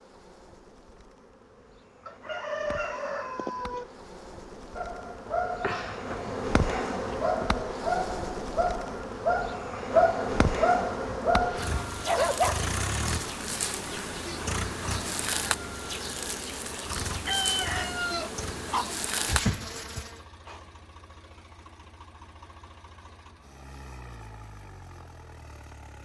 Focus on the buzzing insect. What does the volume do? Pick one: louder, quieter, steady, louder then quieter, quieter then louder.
louder.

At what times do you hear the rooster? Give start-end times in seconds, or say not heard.
2.0-3.9, 17.2-18.9.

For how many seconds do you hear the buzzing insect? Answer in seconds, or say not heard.
20 s.